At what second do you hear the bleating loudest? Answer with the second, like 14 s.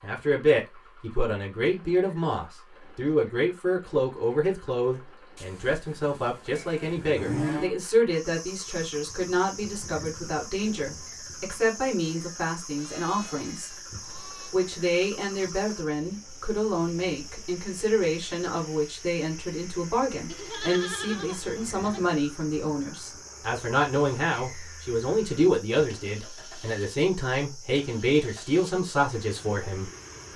7 s.